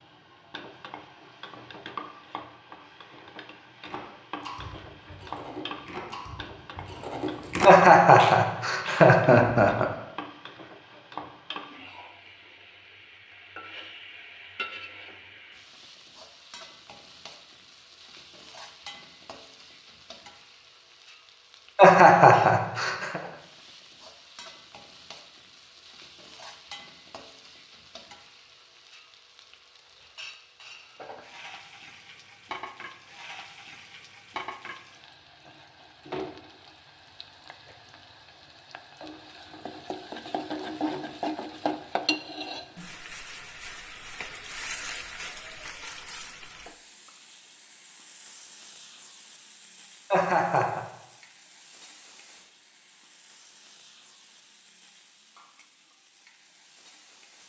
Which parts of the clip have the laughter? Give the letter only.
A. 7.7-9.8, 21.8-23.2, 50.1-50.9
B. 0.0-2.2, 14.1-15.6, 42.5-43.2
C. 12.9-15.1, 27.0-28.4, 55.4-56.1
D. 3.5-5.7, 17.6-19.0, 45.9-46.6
A.